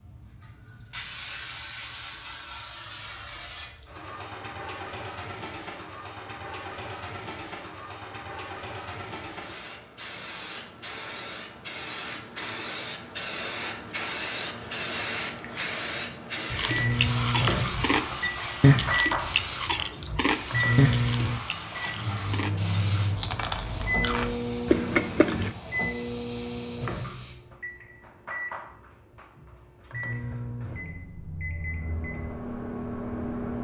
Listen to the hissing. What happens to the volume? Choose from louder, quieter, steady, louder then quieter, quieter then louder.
louder then quieter.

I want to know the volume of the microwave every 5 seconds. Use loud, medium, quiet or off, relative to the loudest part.
off, off, off, loud, loud, medium, medium.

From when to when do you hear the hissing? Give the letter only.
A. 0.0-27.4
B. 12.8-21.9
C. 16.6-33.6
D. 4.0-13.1
A.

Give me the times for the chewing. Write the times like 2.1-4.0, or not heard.
16.5-25.6.